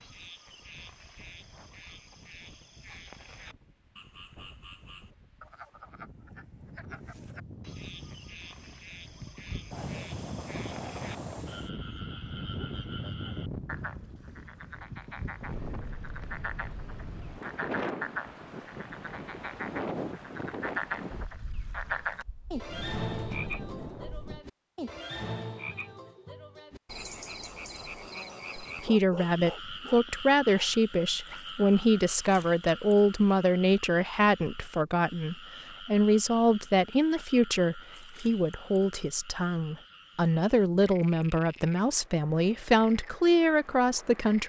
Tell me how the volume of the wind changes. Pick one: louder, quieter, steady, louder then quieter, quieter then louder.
louder.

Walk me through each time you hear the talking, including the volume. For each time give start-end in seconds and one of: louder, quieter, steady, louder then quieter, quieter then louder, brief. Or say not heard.
28.6-44.4 steady.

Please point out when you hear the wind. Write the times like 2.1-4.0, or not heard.
0.0-24.4.